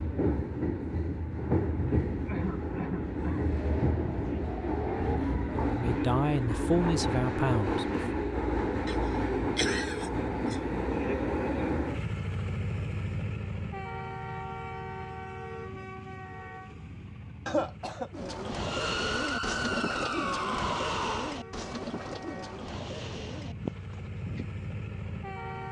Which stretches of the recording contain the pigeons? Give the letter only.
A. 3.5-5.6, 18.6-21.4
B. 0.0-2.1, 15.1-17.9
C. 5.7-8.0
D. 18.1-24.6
D.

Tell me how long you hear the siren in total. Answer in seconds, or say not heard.
5 s.